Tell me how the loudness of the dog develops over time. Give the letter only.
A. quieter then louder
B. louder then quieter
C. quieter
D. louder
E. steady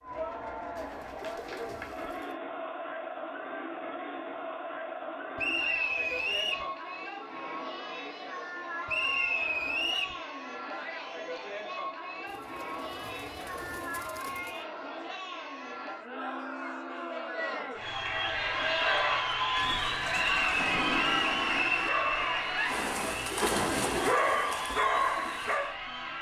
D.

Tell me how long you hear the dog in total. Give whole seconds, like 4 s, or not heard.
7 s.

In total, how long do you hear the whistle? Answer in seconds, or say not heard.
4 s.